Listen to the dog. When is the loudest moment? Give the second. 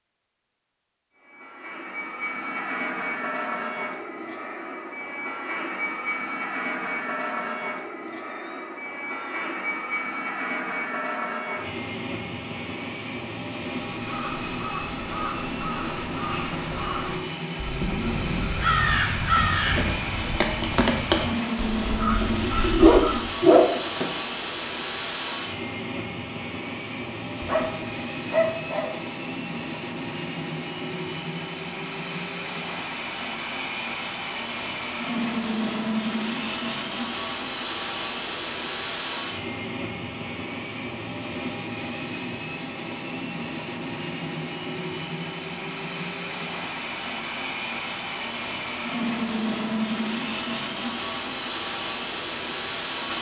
23 s.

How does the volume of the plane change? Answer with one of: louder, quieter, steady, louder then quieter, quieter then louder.
steady.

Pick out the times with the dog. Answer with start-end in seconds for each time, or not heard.
22.2-24.1, 27.4-28.9.